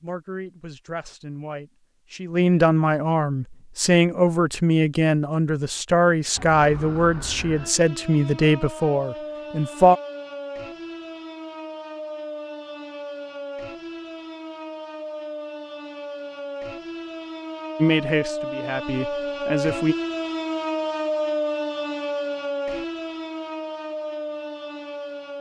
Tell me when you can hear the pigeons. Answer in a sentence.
The pigeons can't be heard in this clip.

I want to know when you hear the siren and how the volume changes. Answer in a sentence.
You can hear the siren from 6.3 to 25.3 s, getting louder.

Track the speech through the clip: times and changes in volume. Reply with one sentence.
You can hear the speech from 0.0 to 10.0 s, getting louder; and briefly from 17.8 to 19.9 s.